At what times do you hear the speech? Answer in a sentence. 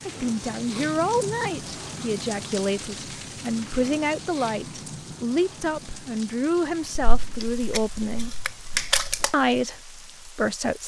You can hear the speech from 0.1 to 8.3 s and from 9.3 to 10.8 s.